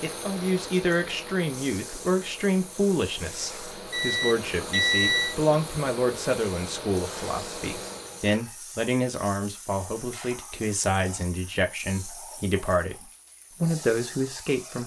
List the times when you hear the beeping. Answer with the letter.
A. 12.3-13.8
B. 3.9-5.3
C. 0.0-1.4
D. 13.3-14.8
B.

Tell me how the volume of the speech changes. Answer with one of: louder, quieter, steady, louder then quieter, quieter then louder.
steady.